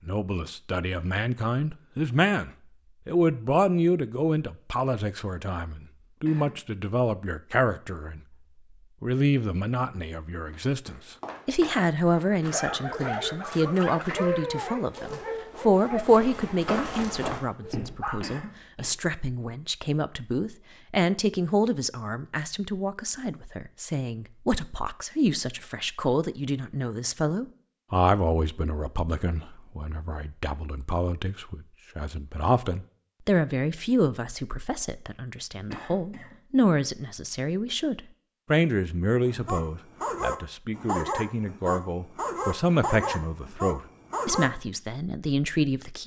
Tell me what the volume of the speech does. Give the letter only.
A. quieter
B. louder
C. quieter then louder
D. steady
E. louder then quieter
D.